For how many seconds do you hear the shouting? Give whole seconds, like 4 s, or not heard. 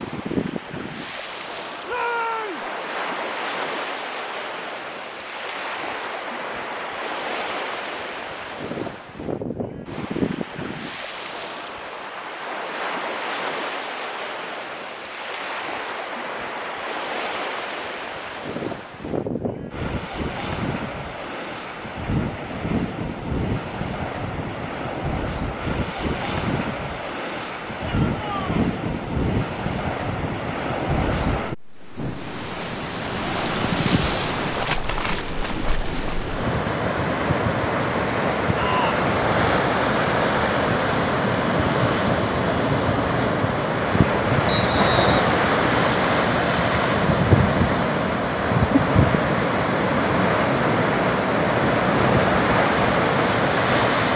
2 s.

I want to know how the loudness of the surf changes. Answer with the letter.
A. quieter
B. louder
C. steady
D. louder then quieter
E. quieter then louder
B.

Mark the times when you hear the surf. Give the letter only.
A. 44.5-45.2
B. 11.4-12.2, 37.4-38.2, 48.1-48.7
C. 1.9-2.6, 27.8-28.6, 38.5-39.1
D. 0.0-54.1
D.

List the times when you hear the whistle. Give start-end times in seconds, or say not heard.
44.5-45.2.